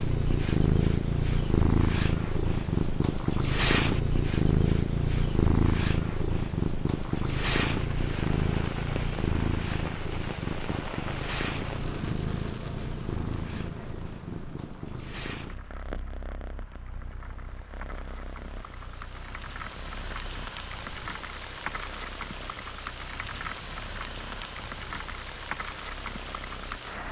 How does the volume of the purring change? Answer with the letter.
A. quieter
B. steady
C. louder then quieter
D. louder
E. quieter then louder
A.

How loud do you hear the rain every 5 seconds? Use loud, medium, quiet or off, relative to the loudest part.
off, loud, loud, medium, loud, loud.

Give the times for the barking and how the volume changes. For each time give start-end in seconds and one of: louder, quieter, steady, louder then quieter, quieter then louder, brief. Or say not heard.
not heard.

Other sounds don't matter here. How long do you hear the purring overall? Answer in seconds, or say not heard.
27 s.